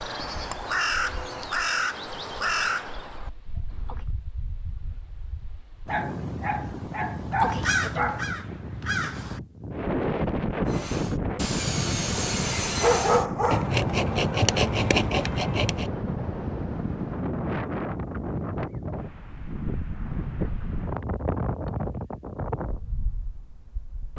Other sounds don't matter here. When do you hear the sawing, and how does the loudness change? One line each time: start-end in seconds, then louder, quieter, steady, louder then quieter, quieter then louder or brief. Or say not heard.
10.7-15.9 louder.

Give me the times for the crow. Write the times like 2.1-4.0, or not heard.
0.0-4.0, 7.3-9.4.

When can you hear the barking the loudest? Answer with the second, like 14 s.
13 s.